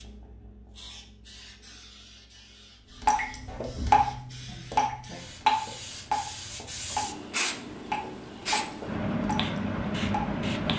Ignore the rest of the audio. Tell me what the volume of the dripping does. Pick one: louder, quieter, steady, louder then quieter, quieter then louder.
quieter.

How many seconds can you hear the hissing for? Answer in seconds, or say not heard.
11 s.